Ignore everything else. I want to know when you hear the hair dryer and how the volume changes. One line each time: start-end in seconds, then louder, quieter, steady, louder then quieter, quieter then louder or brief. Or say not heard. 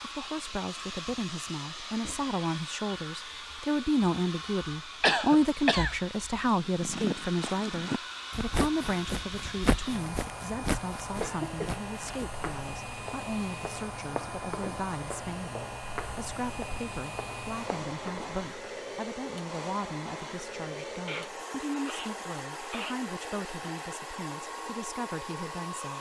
0.0-25.9 steady.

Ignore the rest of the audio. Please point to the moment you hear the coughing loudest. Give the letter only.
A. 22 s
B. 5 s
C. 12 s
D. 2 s
B.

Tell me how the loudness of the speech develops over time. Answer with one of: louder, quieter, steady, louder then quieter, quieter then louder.
quieter.